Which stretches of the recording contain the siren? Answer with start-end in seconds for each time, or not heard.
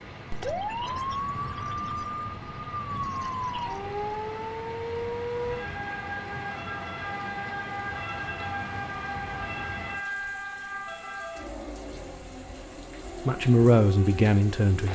0.3-14.9.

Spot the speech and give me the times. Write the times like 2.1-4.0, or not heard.
13.2-14.9.